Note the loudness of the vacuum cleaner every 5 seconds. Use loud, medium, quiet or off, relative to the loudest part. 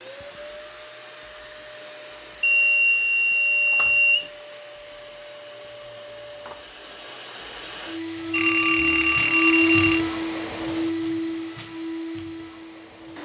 quiet, loud, loud.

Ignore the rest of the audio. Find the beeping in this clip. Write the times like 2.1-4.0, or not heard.
2.4-4.3, 8.3-10.1.